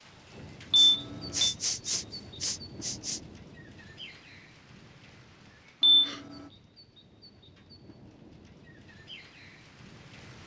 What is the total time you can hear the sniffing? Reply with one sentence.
You can hear the sniffing for 3 seconds altogether.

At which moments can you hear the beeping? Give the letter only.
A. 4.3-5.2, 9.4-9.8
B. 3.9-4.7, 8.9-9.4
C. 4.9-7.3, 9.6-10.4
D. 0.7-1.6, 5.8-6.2
D.